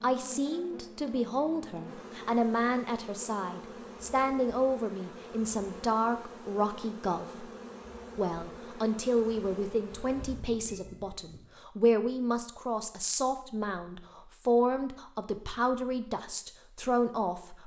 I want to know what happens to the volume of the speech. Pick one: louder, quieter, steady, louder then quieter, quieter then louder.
steady.